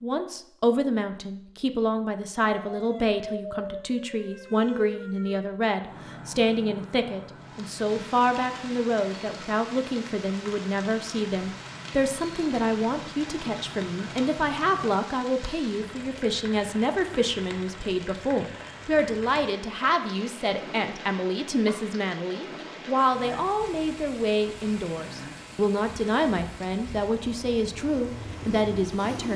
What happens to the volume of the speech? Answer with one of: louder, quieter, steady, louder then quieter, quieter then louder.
steady.